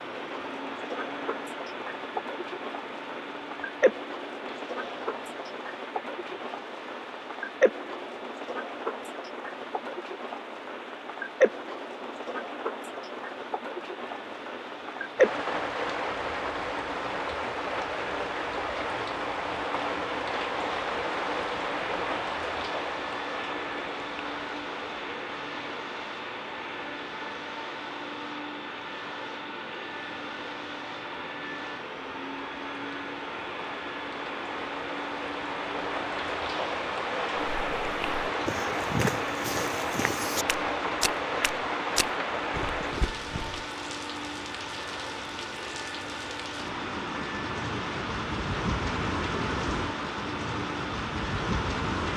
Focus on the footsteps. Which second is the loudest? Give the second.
39 s.